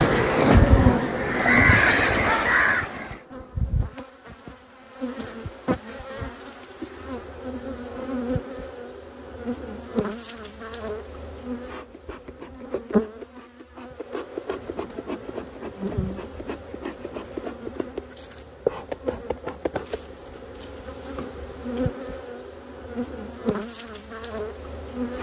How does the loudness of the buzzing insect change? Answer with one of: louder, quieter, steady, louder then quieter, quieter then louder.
quieter.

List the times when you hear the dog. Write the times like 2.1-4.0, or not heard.
not heard.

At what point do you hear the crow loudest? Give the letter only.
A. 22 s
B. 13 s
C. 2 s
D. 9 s
C.